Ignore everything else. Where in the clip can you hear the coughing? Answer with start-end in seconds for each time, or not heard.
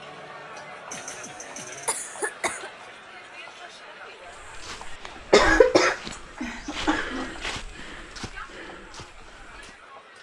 0.9-2.7, 5.3-7.3.